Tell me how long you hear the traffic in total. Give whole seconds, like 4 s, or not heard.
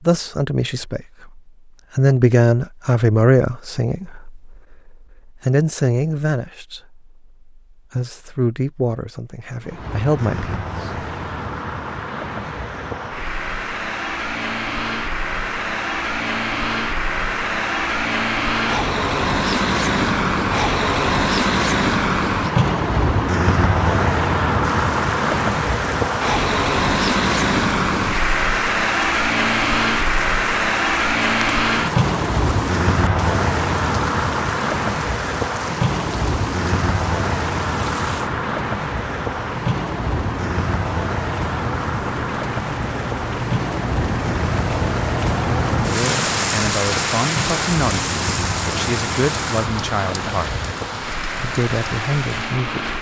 43 s.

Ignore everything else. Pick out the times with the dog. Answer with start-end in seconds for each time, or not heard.
not heard.